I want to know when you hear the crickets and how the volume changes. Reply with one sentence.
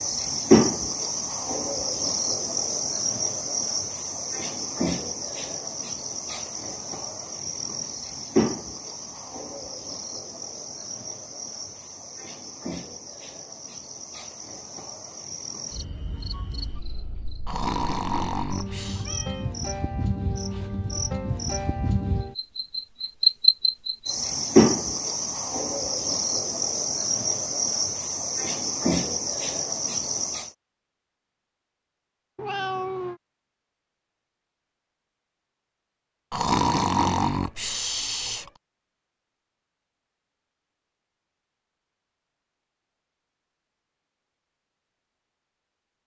The crickets can be heard from 0.0 to 30.5 s, getting quieter then louder.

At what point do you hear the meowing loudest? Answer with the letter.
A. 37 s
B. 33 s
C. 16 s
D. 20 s
B.